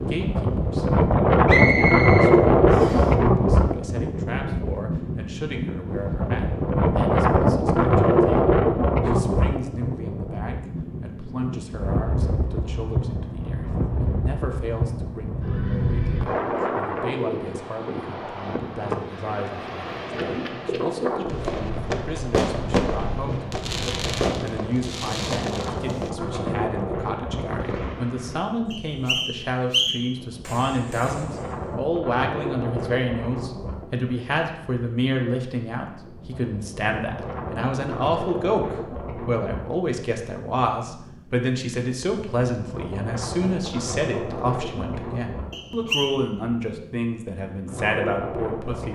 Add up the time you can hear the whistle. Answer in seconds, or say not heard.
4 s.